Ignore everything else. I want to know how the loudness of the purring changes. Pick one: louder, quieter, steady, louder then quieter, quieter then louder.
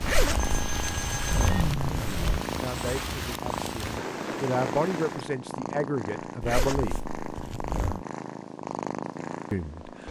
steady.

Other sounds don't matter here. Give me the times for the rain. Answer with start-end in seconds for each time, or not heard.
0.0-5.3.